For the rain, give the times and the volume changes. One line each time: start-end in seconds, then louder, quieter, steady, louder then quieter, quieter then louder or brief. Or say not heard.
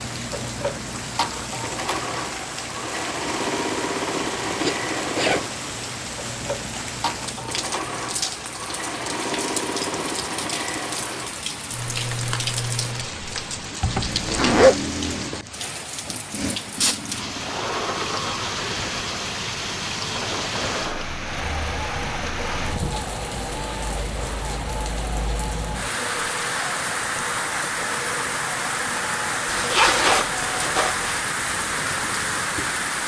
0.0-33.0 louder.